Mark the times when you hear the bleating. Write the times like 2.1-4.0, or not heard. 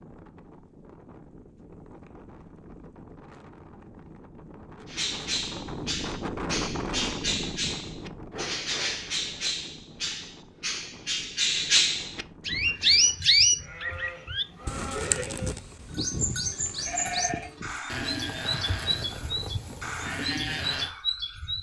12.4-20.9.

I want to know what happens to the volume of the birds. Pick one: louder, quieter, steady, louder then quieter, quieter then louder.
louder then quieter.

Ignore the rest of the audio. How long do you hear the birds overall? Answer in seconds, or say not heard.
17 s.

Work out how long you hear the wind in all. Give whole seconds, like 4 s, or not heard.
13 s.